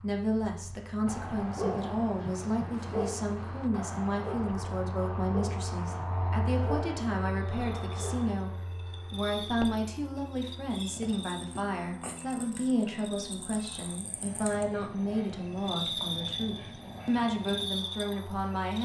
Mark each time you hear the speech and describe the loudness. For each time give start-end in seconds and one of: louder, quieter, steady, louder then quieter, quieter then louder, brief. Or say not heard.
0.0-18.8 steady.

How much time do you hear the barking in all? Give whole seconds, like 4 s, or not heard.
7 s.